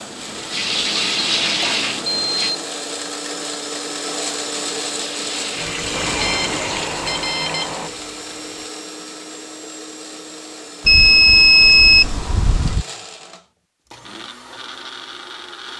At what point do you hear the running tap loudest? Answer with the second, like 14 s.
1 s.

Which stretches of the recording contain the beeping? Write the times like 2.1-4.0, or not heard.
1.4-2.6, 5.9-7.9, 10.8-12.8.